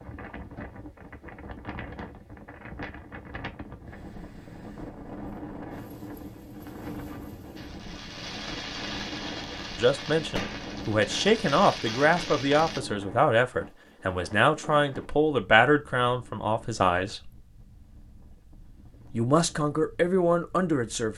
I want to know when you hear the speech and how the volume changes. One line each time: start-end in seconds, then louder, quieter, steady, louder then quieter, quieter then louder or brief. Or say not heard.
9.8-17.3 steady
19.1-21.1 brief.